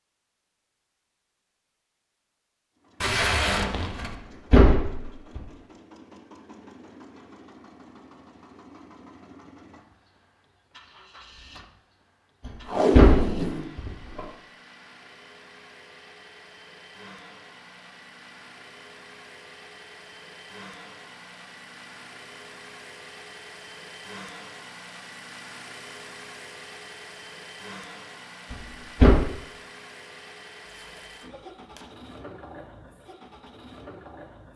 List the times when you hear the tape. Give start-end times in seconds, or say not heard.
3.0-4.2, 12.7-13.7, 30.6-31.9.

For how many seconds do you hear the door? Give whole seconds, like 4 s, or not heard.
4 s.